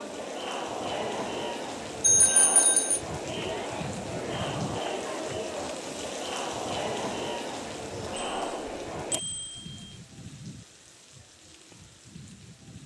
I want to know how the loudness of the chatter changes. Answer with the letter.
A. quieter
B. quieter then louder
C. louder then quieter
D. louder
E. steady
E.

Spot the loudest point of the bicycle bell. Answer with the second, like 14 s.
2 s.